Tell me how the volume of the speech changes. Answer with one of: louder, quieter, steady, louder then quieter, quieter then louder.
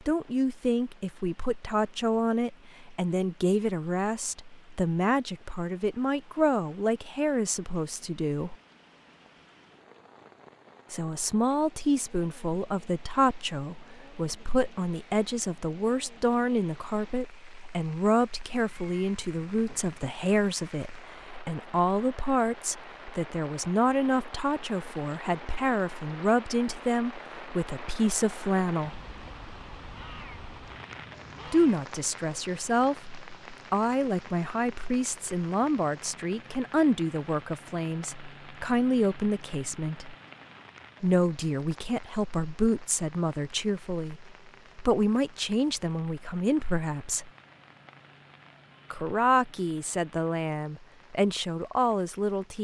steady.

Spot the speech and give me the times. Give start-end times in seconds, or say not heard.
0.1-8.6, 10.9-29.0, 31.4-40.1, 41.0-47.3, 48.9-52.5.